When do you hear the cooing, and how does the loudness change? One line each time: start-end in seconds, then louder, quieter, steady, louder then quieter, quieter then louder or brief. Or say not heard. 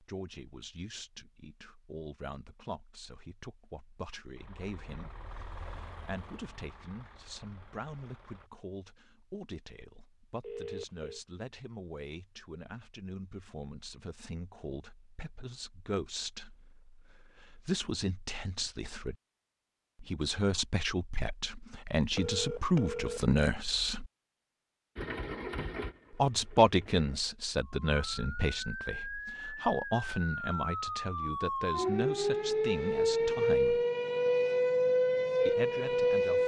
not heard.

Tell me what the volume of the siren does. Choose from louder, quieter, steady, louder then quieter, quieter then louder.
louder.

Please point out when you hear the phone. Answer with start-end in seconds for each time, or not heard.
10.4-11.2, 22.1-23.2.